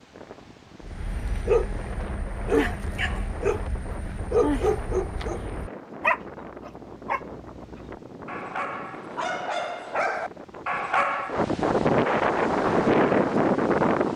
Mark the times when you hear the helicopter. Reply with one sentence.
You can't hear the helicopter here.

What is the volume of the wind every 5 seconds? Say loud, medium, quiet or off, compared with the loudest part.
quiet, quiet, loud.